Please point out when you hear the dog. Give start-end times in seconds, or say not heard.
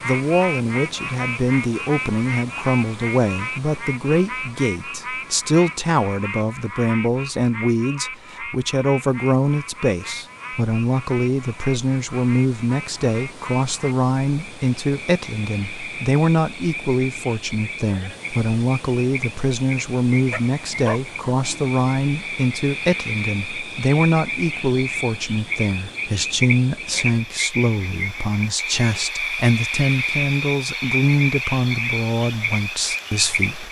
20.3-21.8.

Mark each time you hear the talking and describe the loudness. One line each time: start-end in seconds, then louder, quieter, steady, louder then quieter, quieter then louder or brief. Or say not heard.
0.0-33.6 steady.